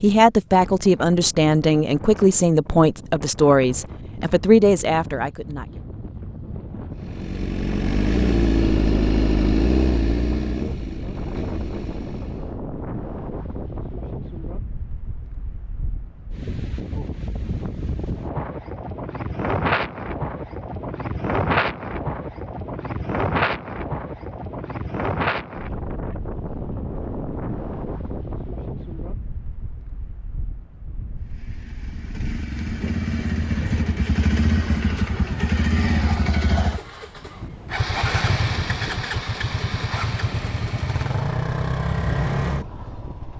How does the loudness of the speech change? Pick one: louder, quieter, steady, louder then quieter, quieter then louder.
steady.